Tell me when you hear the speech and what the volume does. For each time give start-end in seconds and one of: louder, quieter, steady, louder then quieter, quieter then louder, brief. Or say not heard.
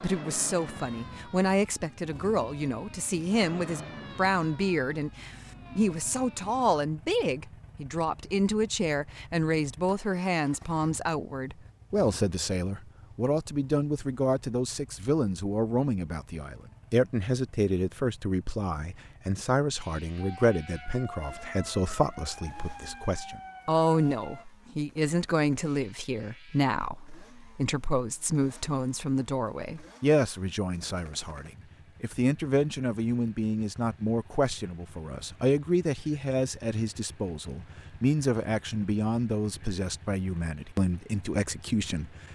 0.0-42.1 steady.